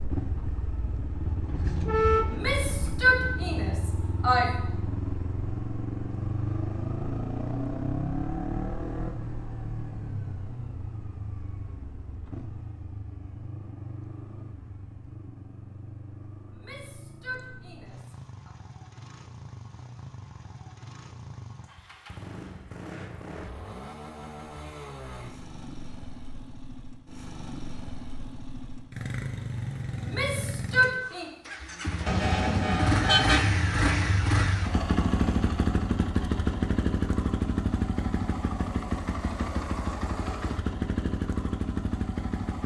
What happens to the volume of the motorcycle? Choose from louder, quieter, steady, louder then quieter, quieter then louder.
quieter then louder.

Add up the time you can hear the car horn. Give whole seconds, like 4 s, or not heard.
3 s.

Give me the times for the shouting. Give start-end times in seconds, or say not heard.
2.2-4.5, 16.5-18.5, 30.0-31.3.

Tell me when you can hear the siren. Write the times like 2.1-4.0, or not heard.
not heard.